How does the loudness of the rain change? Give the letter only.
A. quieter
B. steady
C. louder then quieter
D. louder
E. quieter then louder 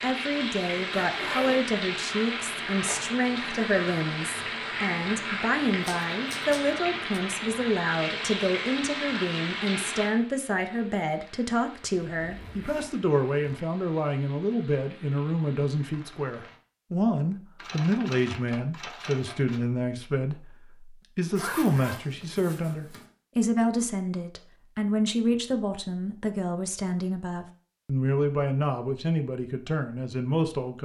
A.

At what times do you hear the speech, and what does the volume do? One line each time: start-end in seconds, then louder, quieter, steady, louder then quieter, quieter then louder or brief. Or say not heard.
0.0-30.8 steady.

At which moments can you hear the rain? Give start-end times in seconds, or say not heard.
0.0-16.6.